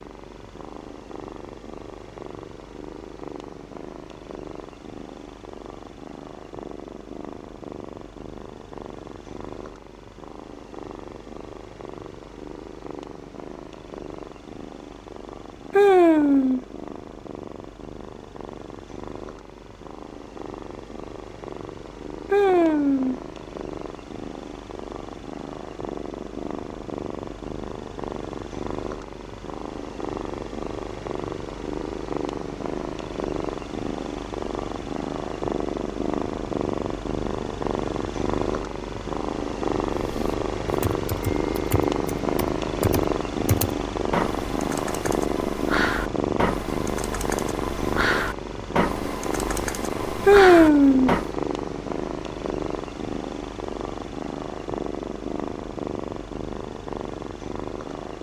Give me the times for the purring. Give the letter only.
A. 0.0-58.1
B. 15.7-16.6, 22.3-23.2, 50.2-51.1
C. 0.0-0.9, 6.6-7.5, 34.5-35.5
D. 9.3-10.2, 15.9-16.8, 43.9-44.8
A.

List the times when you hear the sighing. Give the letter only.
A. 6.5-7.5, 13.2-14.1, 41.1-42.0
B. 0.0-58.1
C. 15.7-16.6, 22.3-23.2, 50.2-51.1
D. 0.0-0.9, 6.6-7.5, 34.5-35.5
C.